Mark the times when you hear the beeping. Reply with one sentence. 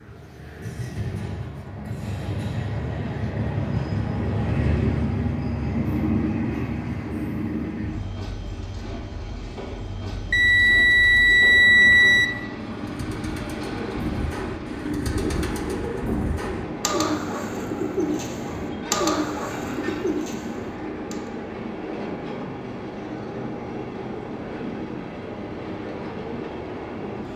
You can hear the beeping from 10.3 to 12.4 s.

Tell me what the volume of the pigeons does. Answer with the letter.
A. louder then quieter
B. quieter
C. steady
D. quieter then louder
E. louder
E.